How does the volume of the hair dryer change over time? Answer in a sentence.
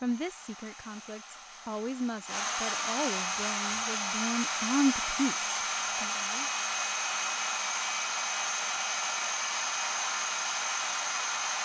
The volume of the hair dryer goes up.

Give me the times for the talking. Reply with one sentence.
The talking can be heard from 0.0 to 6.5 s.